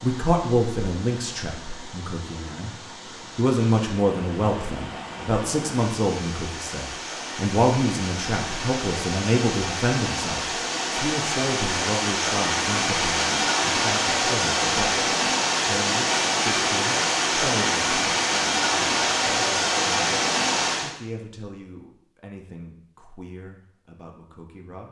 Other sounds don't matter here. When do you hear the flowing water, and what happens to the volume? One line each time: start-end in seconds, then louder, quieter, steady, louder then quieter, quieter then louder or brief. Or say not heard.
0.0-20.9 louder.